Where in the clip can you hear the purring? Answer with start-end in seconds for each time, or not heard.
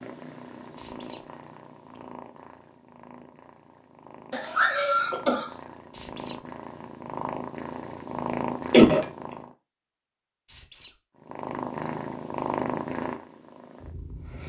0.0-9.6, 11.2-14.4.